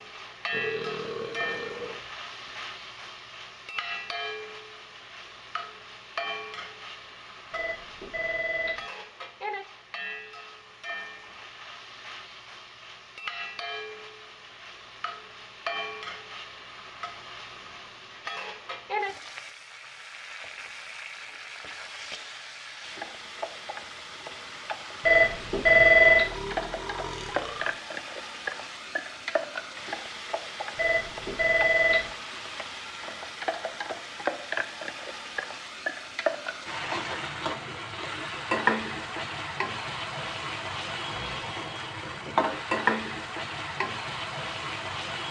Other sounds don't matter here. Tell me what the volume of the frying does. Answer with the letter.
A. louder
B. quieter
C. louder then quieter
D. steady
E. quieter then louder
A.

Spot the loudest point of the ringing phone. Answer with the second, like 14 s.
26 s.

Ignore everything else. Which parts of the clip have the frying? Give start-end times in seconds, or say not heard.
0.0-45.2.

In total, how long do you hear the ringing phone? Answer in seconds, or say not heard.
4 s.